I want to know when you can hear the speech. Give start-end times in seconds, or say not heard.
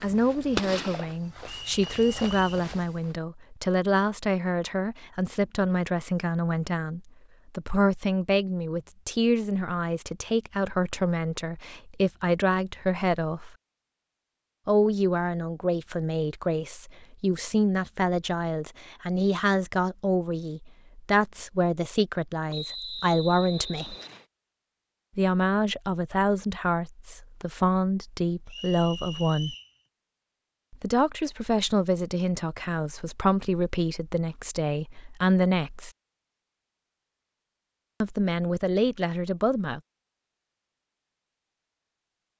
0.0-13.5, 14.7-23.9, 25.1-29.6, 30.7-35.9, 38.0-39.8.